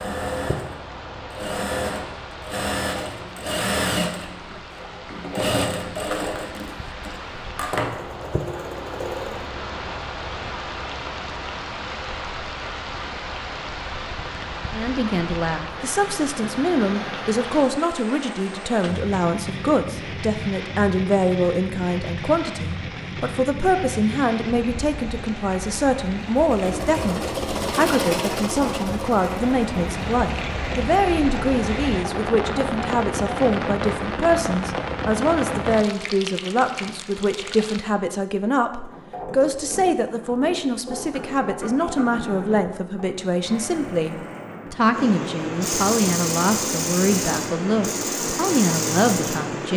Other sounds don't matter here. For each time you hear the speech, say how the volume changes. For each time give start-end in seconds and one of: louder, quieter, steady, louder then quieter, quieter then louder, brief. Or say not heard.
14.7-49.7 steady.